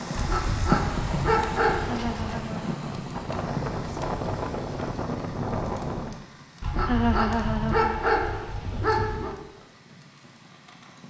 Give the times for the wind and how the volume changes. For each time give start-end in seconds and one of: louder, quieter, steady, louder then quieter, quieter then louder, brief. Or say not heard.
0.0-6.2 louder.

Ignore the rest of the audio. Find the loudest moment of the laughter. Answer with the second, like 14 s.
7 s.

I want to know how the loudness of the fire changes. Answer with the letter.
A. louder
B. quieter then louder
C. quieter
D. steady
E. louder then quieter
C.